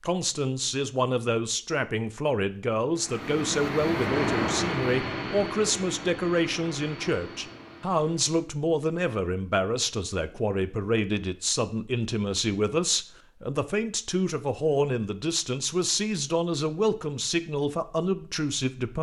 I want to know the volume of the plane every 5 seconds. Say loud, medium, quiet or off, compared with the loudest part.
loud, medium, off, off.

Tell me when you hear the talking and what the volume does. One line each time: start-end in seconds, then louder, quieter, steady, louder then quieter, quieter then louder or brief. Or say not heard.
0.0-18.9 steady.